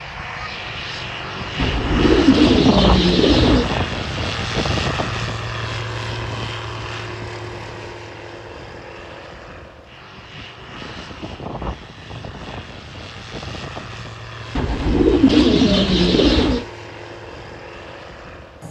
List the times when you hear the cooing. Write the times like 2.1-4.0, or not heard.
1.6-3.6, 14.6-16.6.